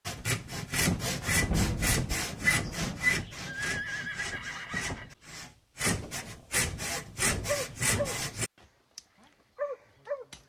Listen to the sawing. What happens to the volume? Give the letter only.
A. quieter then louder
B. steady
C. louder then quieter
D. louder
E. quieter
A.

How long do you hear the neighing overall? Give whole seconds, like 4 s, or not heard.
2 s.